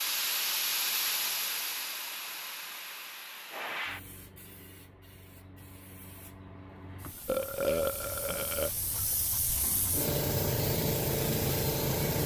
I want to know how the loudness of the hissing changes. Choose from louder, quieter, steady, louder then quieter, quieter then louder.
quieter then louder.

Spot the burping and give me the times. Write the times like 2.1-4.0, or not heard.
7.2-8.7.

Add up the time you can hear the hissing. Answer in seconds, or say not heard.
12 s.